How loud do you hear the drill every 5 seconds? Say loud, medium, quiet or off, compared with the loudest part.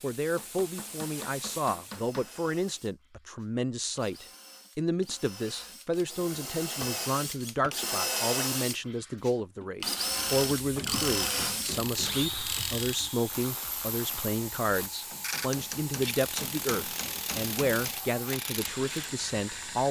quiet, loud, loud, off.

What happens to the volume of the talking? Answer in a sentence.
The loudness of the talking stays about the same.